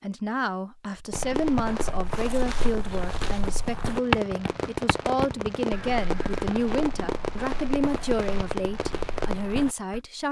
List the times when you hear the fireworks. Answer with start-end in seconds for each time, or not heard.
1.1-9.6.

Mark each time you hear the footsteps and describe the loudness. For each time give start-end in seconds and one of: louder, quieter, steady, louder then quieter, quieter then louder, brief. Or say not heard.
1.1-10.0 louder then quieter.